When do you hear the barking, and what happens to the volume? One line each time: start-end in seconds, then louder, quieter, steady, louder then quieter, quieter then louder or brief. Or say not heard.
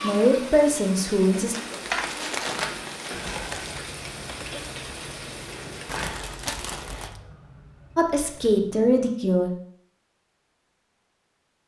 not heard.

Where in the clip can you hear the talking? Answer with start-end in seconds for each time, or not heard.
0.0-1.6, 8.0-9.5.